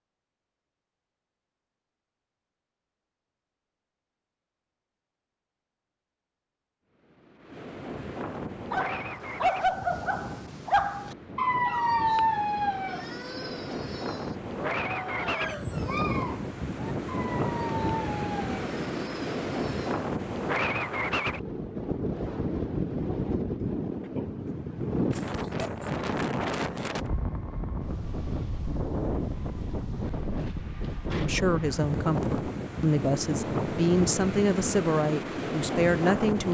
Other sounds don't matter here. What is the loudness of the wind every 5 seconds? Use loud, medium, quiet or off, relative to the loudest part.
off, medium, medium, loud, loud, loud, loud, loud.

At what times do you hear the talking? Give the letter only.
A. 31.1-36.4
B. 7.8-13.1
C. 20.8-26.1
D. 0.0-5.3
A.